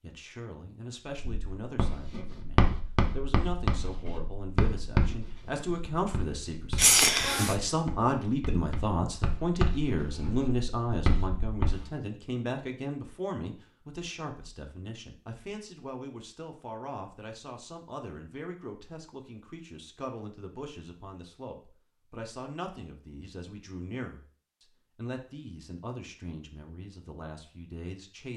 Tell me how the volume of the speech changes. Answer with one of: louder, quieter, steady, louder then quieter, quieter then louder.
louder then quieter.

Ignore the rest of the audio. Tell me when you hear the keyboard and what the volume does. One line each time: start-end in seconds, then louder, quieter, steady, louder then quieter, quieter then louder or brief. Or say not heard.
not heard.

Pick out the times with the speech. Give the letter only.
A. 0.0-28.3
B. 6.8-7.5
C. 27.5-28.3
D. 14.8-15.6
A.